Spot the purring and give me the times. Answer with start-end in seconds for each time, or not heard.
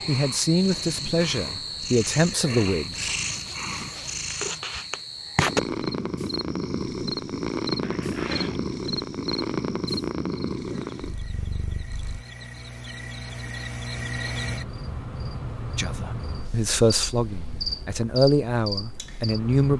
0.0-12.2.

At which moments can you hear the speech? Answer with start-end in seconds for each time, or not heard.
0.1-3.1, 15.8-19.7.